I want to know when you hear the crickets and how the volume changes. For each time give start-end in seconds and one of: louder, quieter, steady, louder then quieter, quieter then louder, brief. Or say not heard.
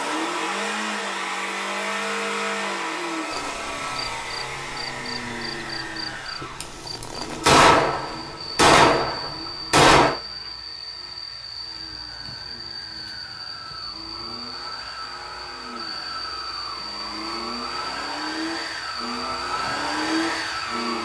3.3-21.0 steady.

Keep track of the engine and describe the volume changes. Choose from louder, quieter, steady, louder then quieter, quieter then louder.
quieter then louder.